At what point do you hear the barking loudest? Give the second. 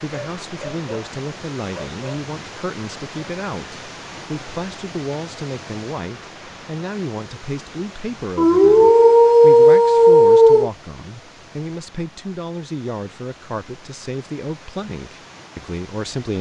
10 s.